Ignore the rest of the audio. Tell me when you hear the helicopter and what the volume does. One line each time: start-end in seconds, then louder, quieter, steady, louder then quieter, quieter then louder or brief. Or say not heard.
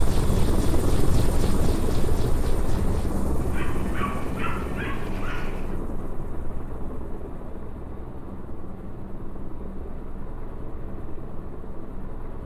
0.0-12.4 quieter.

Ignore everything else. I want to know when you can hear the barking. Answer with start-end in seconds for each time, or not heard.
3.4-5.8.